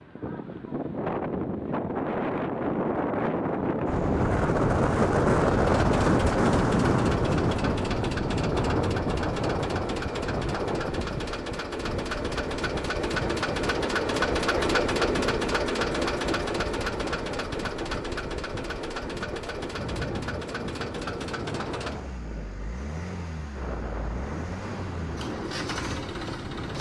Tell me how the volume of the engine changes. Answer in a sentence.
The volume of the engine goes up, then down.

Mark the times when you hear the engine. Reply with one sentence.
The engine can be heard from 5.5 to 26.7 s.